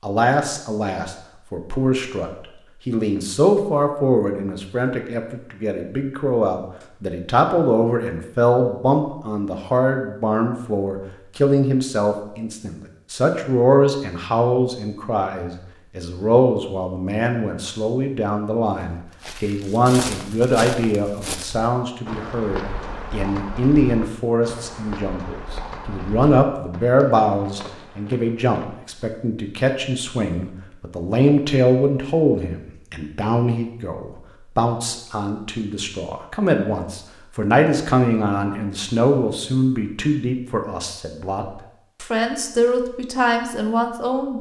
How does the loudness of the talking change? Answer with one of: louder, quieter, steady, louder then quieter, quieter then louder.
steady.